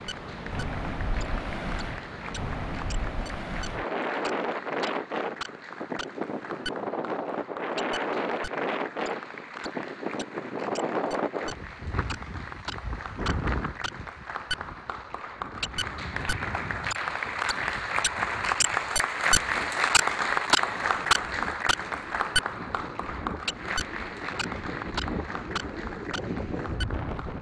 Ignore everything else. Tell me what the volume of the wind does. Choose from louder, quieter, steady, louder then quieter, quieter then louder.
quieter then louder.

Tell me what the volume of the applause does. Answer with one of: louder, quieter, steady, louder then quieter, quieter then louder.
louder then quieter.